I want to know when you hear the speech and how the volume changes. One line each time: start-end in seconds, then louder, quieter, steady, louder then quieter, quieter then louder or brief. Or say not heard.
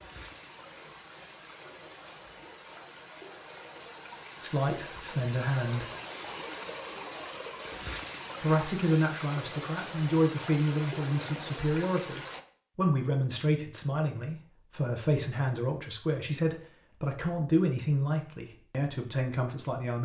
4.4-5.9 brief
8.4-20.0 steady.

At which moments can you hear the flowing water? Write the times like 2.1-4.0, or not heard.
0.0-12.4.